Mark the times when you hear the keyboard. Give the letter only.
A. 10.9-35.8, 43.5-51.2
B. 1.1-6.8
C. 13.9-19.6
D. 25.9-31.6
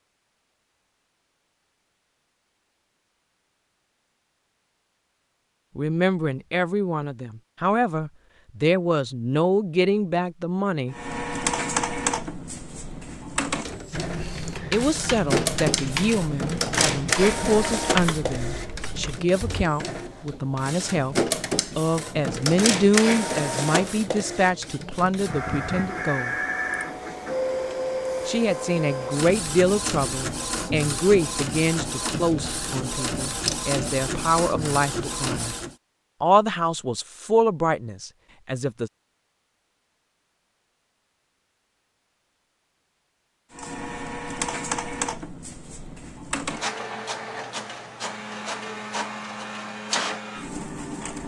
C.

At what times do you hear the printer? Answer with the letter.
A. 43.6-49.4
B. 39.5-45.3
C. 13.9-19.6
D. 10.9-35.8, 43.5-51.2
D.